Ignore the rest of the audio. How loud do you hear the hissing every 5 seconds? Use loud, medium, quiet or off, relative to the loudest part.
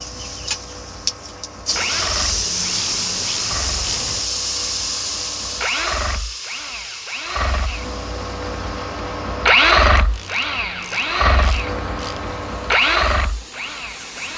loud, medium, quiet.